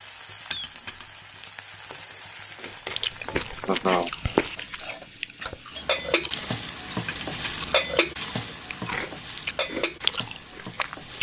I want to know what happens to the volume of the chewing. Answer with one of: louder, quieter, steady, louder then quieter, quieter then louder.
quieter then louder.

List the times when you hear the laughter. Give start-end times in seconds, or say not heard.
3.6-4.1.